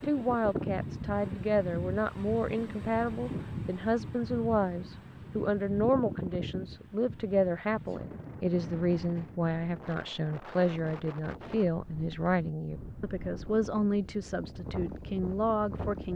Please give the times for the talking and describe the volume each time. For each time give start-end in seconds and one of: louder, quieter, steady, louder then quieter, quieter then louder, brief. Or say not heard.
0.0-16.1 steady.